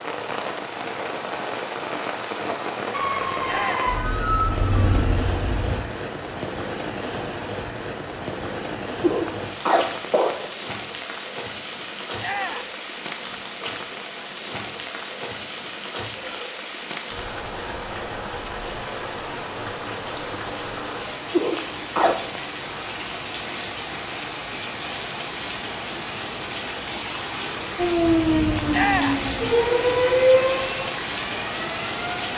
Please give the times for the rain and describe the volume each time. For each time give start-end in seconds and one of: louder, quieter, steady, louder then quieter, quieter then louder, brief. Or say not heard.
0.0-32.3 steady.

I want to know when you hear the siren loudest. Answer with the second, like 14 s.
30 s.